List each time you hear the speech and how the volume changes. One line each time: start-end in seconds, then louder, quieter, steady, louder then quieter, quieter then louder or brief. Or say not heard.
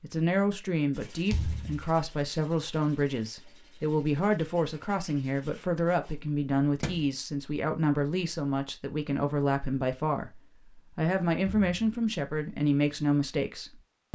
0.0-14.1 steady.